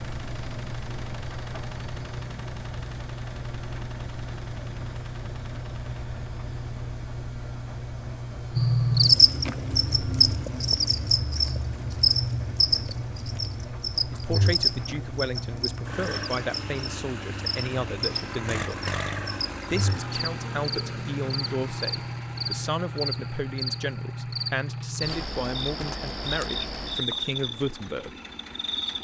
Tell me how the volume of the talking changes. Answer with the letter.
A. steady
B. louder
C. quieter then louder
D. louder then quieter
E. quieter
A.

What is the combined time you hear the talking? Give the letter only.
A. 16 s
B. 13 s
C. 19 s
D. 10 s
B.